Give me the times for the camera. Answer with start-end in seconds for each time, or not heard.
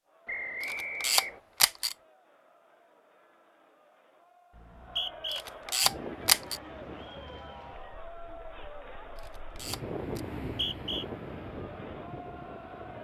0.6-1.9, 5.3-6.6, 9.2-10.2.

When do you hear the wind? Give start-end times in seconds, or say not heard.
5.8-12.9.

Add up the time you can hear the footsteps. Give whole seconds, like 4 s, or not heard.
not heard.